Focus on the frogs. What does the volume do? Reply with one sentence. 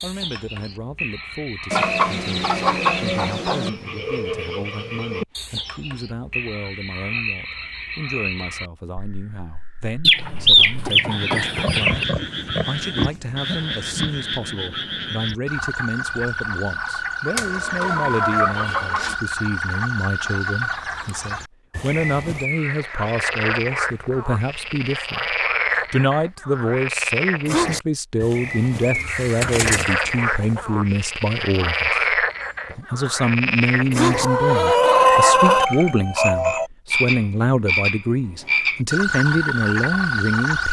The loudness of the frogs goes up.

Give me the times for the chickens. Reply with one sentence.
You can hear the chickens from 1.7 to 3.7 s, from 10.0 to 12.1 s, from 17.4 to 19.1 s, from 28.9 to 30.6 s and from 34.1 to 35.6 s.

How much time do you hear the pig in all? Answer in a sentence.
The pig can be heard for 3 seconds in total.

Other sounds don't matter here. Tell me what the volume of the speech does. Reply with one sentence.
The volume of the speech goes up.